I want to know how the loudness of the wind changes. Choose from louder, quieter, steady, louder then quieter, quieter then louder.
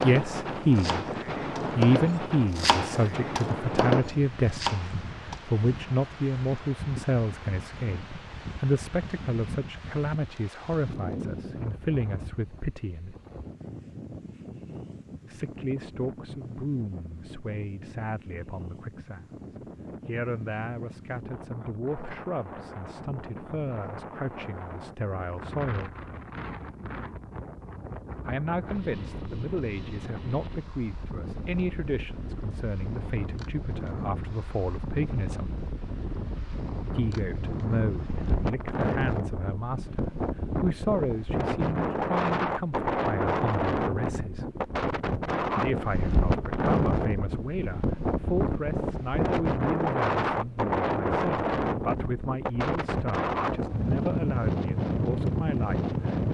quieter then louder.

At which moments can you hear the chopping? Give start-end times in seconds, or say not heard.
0.0-5.5.